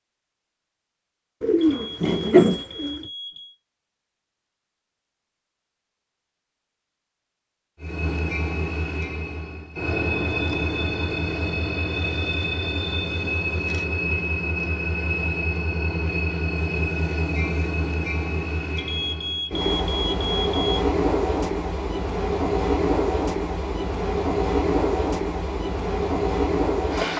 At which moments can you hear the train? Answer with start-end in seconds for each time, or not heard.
7.8-27.1.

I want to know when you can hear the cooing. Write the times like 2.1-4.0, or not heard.
1.4-3.0.